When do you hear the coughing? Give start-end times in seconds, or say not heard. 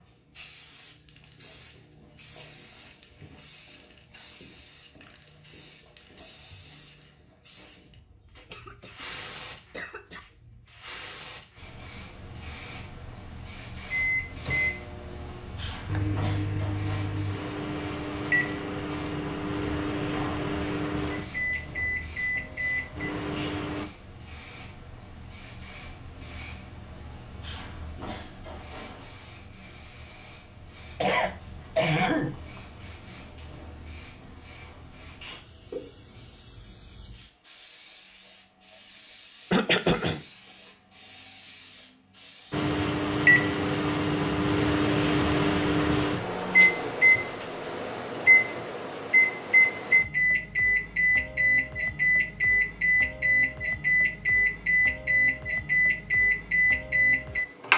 8.3-10.2, 31.0-32.4, 39.5-40.2.